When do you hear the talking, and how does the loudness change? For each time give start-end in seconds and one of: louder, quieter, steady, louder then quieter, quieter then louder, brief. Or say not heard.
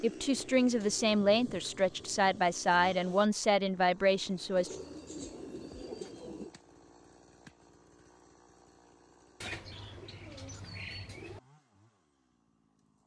0.0-4.7 steady.